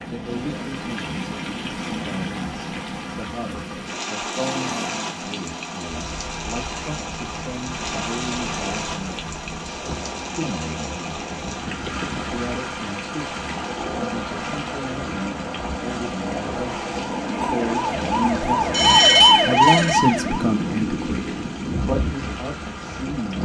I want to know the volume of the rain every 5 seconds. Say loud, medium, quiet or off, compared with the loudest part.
loud, loud, loud, medium, medium.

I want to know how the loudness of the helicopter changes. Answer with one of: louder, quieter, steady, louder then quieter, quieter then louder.
louder.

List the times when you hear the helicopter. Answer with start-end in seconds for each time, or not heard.
4.3-23.4.